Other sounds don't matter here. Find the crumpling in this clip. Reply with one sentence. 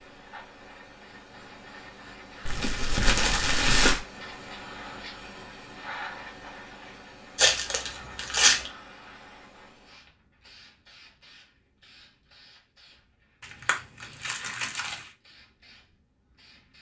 The crumpling can be heard from 2.5 to 4.0 s, from 7.3 to 8.7 s and from 13.4 to 15.0 s.